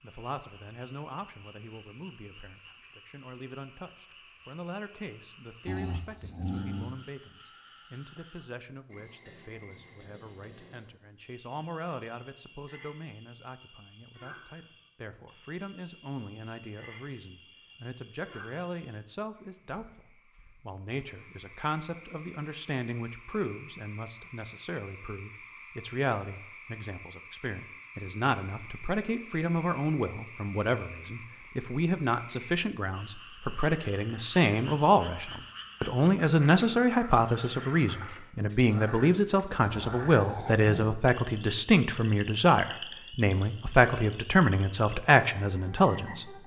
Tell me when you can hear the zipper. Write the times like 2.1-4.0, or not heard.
not heard.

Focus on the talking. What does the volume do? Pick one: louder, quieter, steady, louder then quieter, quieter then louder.
louder.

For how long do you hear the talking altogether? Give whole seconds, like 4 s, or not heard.
46 s.